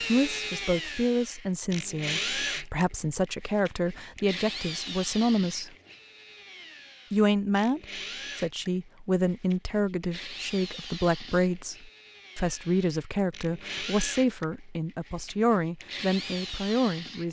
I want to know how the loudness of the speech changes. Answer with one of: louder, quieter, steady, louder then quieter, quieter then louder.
steady.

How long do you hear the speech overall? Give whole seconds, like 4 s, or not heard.
16 s.